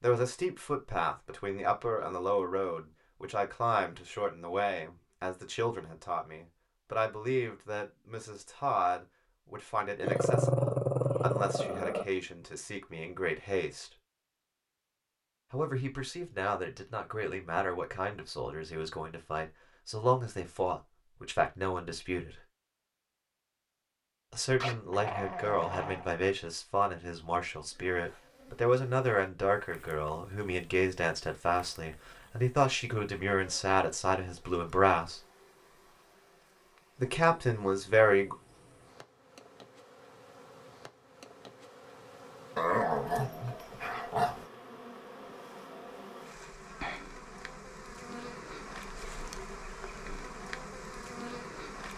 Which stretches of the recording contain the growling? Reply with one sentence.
The growling can be heard from 10.0 to 12.1 s, from 24.6 to 26.1 s and from 42.5 to 44.5 s.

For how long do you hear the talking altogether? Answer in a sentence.
The talking can be heard for 33 seconds in total.